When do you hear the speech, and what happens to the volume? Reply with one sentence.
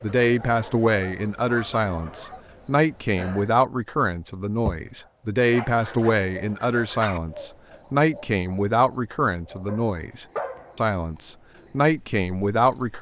You can hear the speech from 0.0 to 12.9 s, at a steady volume.